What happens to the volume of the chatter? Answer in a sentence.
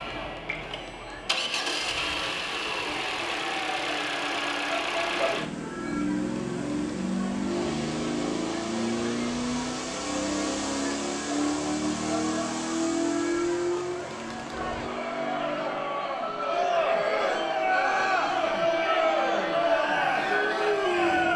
The loudness of the chatter goes up.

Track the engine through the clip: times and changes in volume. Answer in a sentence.
The engine can be heard from 0.0 to 21.3 s, getting quieter.